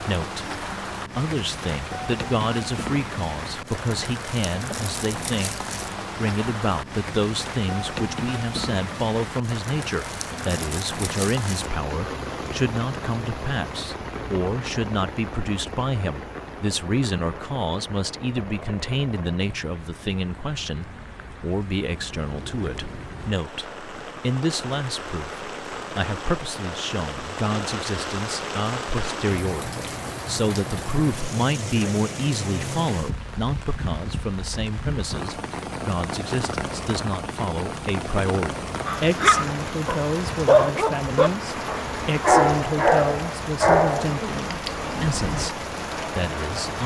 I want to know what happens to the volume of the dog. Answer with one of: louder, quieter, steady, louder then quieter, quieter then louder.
quieter.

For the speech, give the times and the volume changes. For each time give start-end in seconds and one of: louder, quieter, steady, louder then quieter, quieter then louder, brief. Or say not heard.
0.0-46.8 steady.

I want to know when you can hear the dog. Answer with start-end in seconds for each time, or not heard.
38.9-45.5.